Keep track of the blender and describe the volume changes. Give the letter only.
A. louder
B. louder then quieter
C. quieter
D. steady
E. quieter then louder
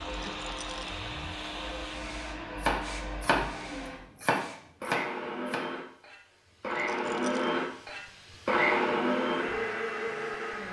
A.